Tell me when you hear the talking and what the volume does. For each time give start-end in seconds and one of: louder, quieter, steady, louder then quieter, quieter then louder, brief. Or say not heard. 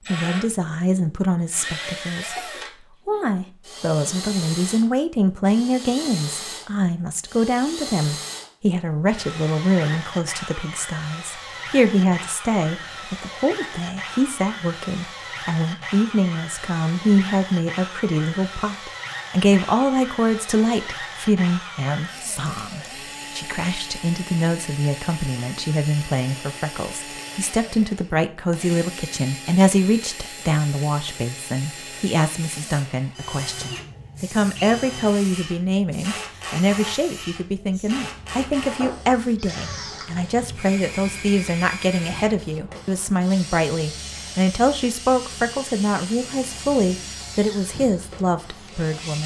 0.1-49.2 steady.